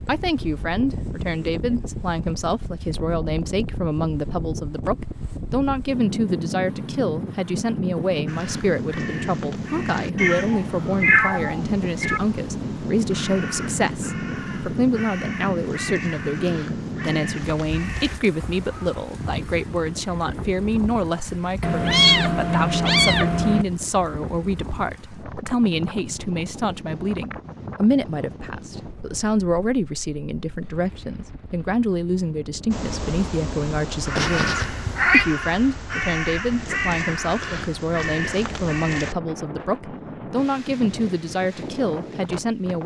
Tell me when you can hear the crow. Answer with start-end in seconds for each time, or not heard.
8.2-19.1, 32.7-39.1.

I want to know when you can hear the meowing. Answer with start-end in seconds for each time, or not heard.
10.2-12.2, 21.6-23.6, 34.1-35.2.